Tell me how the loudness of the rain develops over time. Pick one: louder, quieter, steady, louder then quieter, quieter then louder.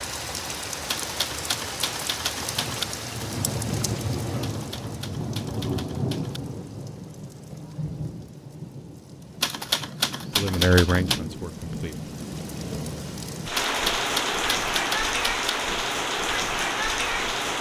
quieter then louder.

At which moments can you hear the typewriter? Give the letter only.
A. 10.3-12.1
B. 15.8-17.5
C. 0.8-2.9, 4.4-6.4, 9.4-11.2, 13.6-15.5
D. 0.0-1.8
C.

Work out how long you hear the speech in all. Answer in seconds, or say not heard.
2 s.